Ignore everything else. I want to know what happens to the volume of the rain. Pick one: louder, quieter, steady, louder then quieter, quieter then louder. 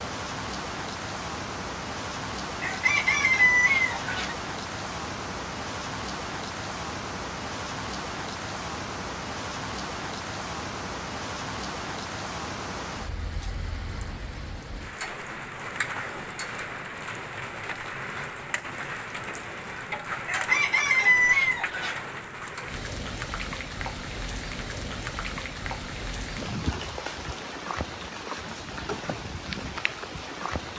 steady.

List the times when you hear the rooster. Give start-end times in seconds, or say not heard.
2.6-4.3, 20.2-22.0.